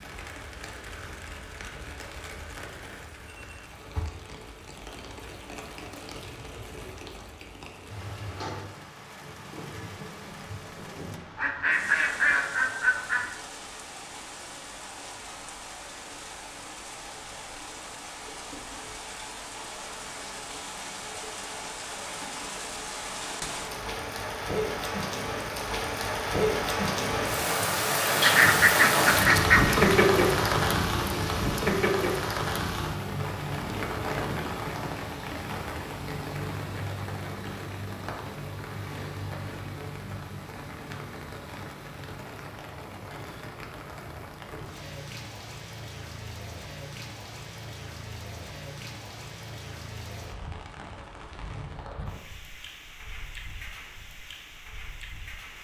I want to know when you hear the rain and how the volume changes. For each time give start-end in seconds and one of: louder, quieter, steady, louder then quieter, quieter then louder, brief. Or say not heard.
0.0-55.5 louder then quieter.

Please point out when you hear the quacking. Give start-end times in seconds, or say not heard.
11.3-13.2, 28.2-29.9.